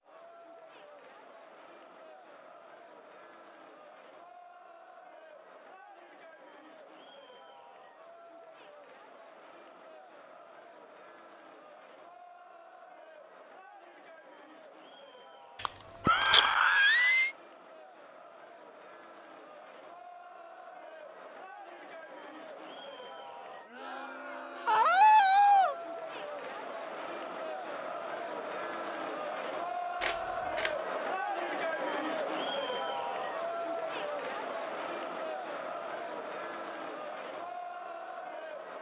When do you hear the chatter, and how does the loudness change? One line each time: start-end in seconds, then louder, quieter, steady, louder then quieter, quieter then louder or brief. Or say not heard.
0.0-38.7 louder.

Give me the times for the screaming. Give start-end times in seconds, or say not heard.
16.1-17.3, 24.6-25.8.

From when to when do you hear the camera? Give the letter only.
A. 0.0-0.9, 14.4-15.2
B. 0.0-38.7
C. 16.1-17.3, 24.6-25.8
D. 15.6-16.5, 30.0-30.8
D.